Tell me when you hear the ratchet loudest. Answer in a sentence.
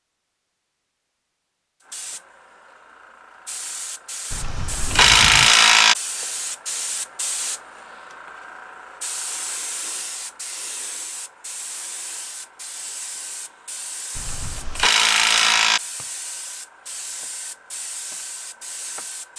The volume of the ratchet peaks at 5 seconds.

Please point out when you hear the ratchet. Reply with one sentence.
You can hear the ratchet from 4.3 to 6.0 s and from 14.2 to 15.8 s.